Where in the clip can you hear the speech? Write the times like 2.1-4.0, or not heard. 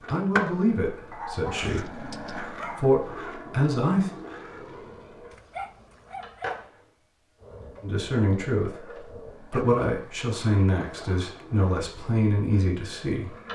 0.1-4.1, 7.8-13.3.